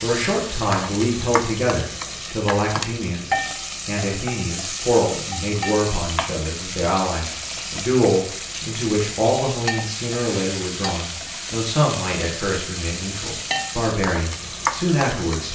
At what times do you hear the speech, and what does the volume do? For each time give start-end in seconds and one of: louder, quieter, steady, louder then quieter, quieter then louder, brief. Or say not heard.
0.0-15.4 steady.